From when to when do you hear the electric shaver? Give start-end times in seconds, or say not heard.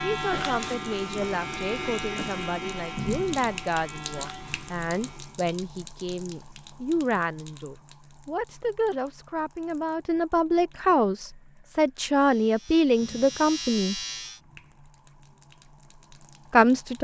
0.0-5.4, 12.2-14.4.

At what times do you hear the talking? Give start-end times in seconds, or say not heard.
0.0-14.0, 16.5-17.0.